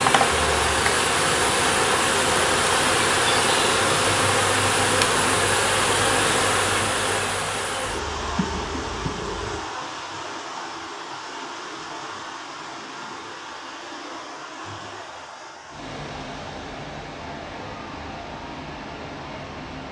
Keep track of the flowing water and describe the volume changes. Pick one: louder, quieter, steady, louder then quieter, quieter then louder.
quieter.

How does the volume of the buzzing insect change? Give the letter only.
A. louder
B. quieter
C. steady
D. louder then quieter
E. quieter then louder
B.